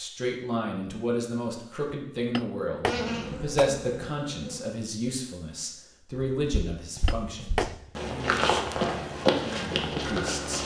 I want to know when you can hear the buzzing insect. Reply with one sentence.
The buzzing insect can be heard from 2.9 to 4.7 s.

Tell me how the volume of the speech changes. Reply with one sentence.
The volume of the speech goes down.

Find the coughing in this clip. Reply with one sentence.
You can't hear the coughing here.